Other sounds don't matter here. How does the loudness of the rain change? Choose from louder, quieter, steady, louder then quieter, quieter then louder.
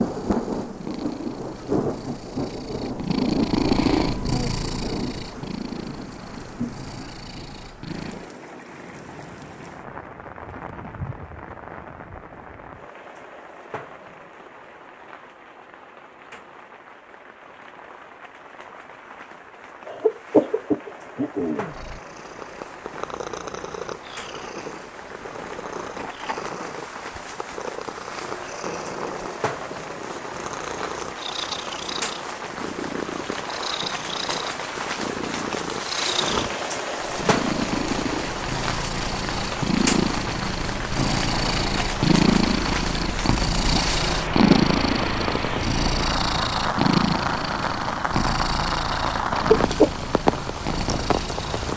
quieter then louder.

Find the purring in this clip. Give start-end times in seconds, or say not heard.
0.0-8.3, 21.7-51.7.